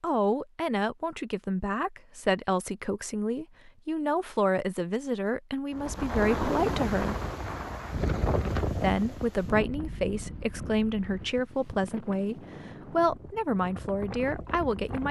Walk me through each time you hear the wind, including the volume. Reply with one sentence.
The wind can be heard from 5.7 to 15.0 s, getting quieter.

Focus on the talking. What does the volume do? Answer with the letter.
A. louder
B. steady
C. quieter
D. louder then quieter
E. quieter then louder
B.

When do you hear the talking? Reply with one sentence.
You can hear the talking from 0.0 to 7.2 s and from 8.7 to 15.0 s.